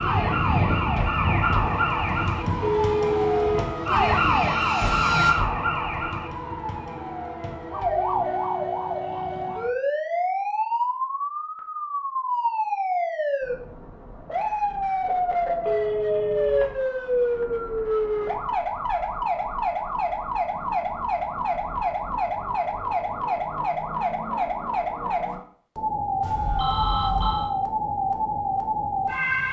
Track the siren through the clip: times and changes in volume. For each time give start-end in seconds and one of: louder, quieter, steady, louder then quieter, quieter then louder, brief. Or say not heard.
0.0-29.4 steady.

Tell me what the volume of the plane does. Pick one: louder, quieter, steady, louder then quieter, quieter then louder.
quieter then louder.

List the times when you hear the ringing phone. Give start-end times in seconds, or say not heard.
2.6-3.7, 15.7-16.8, 26.2-27.5.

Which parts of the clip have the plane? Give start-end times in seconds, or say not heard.
0.0-5.3.